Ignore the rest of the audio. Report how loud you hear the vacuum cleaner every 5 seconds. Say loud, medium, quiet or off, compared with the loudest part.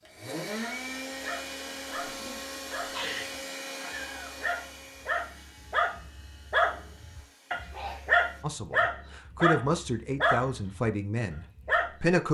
loud, quiet, off.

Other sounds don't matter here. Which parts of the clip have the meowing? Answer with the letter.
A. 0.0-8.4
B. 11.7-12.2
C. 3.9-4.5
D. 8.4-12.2
C.